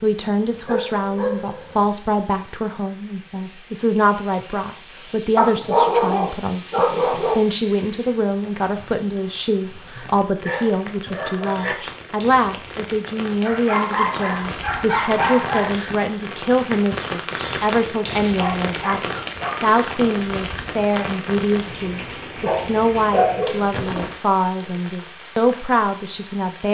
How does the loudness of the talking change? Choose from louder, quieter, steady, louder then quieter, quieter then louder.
steady.